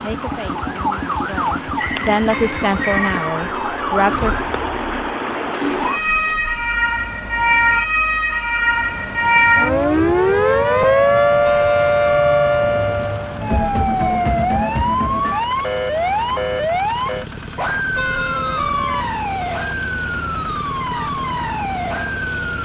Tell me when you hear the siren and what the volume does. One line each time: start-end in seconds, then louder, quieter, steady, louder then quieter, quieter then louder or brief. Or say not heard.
0.0-22.6 louder then quieter.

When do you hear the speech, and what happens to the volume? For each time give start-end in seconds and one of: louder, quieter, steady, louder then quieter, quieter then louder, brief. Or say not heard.
0.0-4.3 louder then quieter.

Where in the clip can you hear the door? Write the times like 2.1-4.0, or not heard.
not heard.